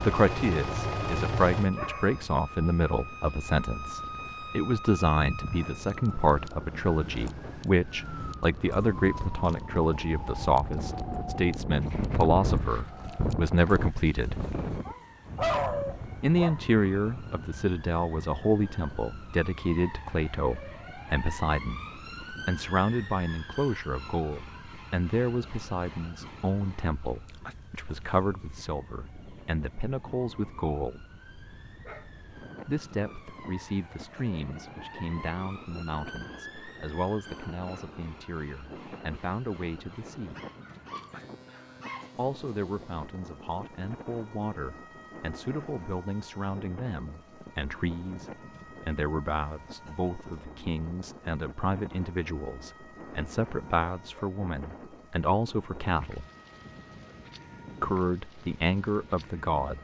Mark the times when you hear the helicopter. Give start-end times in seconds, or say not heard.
0.0-1.7.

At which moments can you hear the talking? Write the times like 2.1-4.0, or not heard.
0.0-14.3, 16.2-31.1, 32.6-40.4, 42.1-56.2, 57.8-59.7.